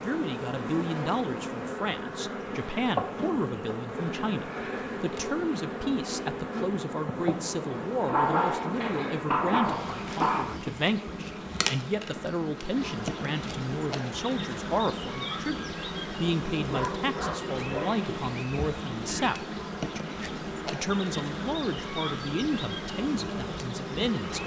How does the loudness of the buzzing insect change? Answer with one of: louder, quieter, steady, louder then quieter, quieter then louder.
steady.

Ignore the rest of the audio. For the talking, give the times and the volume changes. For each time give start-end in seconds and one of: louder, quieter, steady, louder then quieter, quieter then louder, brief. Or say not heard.
0.0-24.4 steady.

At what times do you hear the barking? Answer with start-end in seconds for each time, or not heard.
8.1-10.4, 16.6-18.0.